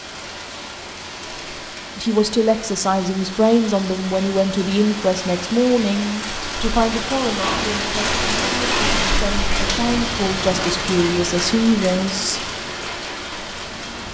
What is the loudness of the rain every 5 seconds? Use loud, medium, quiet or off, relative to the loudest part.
medium, loud, loud.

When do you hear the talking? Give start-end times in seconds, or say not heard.
1.9-12.4.